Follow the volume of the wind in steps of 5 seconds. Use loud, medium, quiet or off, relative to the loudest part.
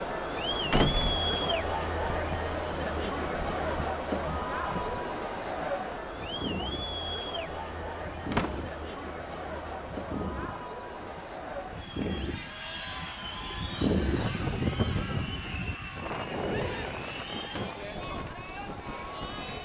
medium, medium, loud, medium.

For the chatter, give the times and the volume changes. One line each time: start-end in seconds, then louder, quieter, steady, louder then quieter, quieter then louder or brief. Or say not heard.
0.0-19.6 quieter.